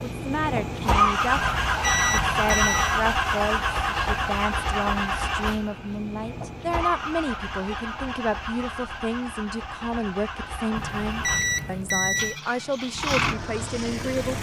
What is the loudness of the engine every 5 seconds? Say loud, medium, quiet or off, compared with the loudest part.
loud, medium, medium.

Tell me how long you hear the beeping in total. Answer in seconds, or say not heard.
3 s.